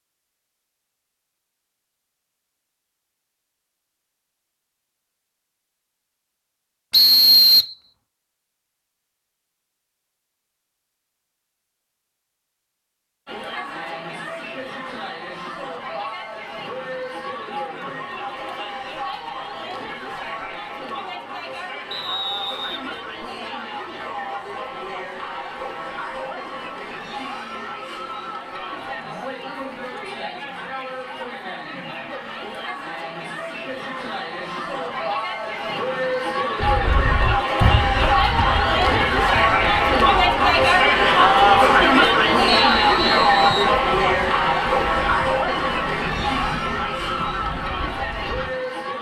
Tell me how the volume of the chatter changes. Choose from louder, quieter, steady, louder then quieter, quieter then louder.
louder.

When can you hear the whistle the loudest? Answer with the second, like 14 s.
7 s.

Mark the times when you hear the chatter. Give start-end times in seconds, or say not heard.
13.2-48.9.